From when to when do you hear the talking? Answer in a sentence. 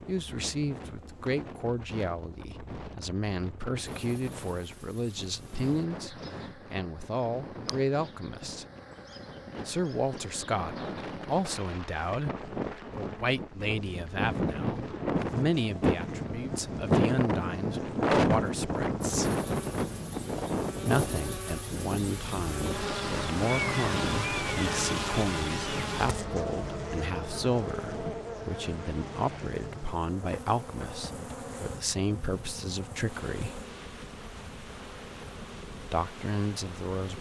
The talking can be heard from 0.1 to 8.7 s, from 9.7 to 19.3 s, from 20.9 to 33.6 s and from 35.8 to 37.1 s.